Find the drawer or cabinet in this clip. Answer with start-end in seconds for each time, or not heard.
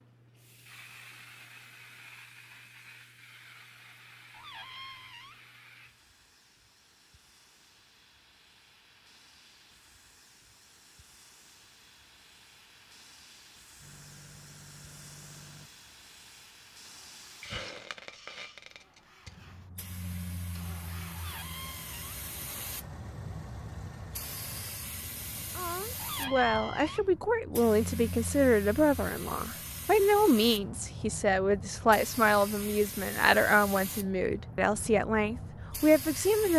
4.3-5.4, 21.1-22.2, 25.9-27.1.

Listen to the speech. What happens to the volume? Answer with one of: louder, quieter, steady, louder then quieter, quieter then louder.
steady.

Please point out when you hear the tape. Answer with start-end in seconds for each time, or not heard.
not heard.